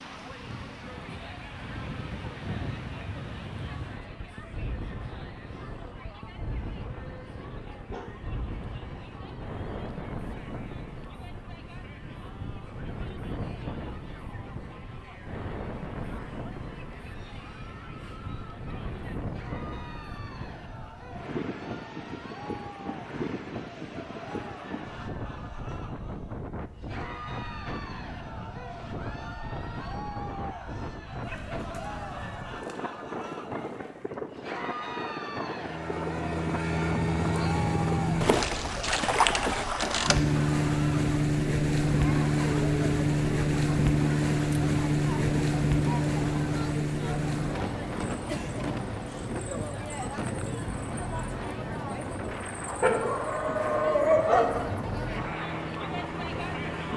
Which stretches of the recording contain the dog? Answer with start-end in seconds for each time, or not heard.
7.8-8.2, 31.2-34.1, 52.6-54.6.